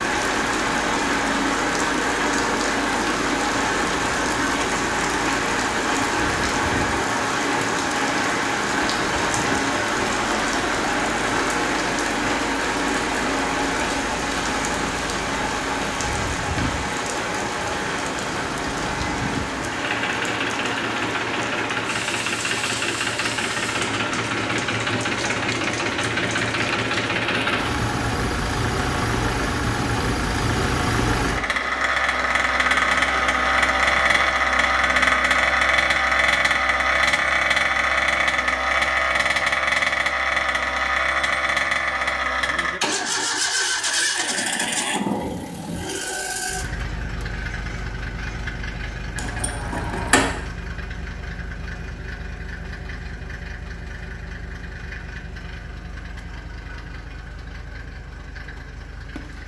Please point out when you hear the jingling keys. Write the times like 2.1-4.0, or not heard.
49.1-50.4.